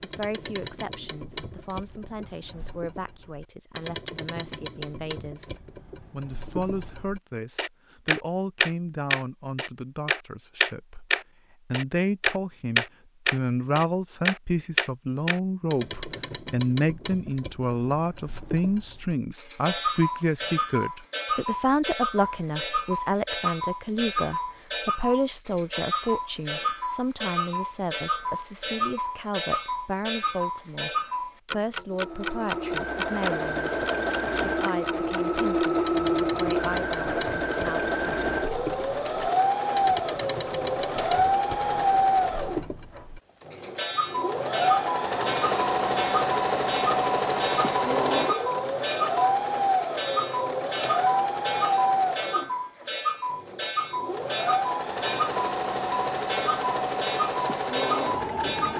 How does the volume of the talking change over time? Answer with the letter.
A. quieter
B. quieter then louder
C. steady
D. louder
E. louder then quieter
E.